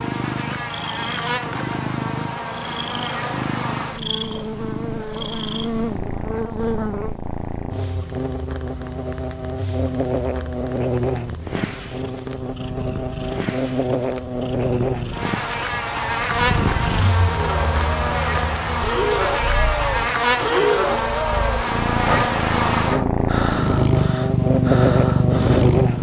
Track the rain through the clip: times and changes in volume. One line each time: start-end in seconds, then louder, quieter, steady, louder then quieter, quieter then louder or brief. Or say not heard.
not heard.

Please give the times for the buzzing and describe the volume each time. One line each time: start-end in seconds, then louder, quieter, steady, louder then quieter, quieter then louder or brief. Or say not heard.
0.0-25.9 louder.